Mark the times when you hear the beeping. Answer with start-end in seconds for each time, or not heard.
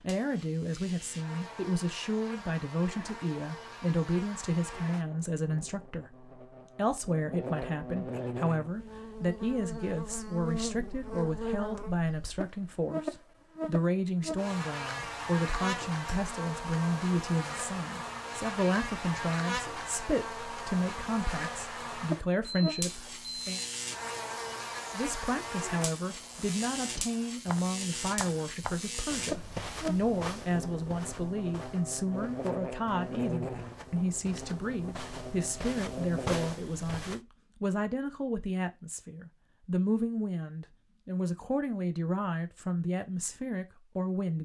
22.4-23.9.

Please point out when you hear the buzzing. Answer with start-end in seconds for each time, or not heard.
0.0-36.5.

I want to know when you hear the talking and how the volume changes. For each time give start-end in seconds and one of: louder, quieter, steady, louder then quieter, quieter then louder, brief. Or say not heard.
0.0-23.6 steady
24.9-44.4 steady.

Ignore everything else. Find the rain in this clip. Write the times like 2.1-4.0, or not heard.
not heard.